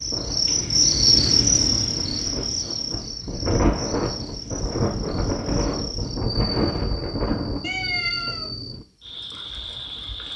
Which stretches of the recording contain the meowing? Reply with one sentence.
You can hear the meowing from 7.6 to 8.8 s.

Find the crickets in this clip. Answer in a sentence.
You can hear the crickets from 0.0 to 10.3 s.